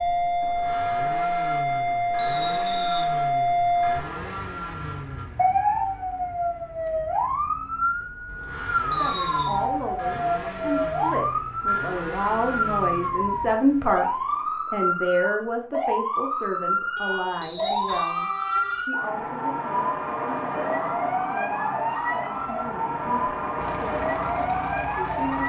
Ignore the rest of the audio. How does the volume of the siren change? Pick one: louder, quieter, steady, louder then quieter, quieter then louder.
steady.